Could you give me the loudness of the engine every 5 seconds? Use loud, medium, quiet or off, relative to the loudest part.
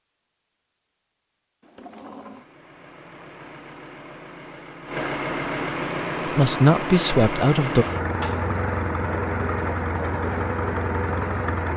quiet, loud, loud.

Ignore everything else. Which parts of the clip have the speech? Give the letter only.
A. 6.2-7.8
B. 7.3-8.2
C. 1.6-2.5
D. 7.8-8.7
A.